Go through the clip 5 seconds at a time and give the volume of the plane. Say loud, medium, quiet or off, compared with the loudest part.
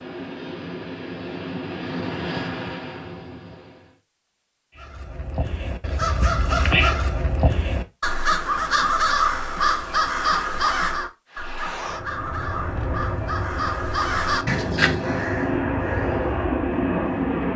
medium, off, medium, loud.